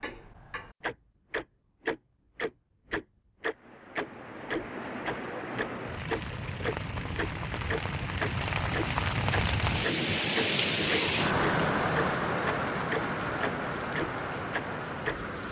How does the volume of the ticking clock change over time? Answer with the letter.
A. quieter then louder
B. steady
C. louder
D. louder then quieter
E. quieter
C.